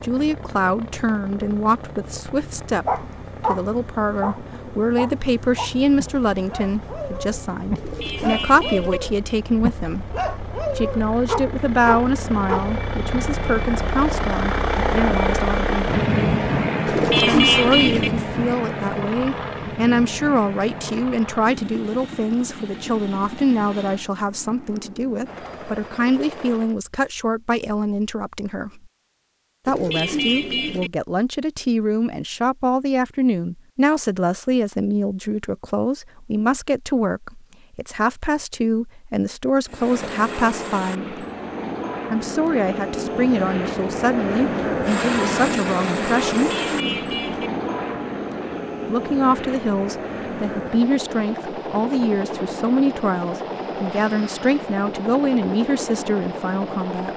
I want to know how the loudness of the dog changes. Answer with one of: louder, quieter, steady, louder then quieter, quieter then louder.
quieter then louder.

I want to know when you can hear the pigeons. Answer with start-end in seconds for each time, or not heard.
7.8-9.0, 16.9-18.1, 29.6-30.9, 46.3-47.5.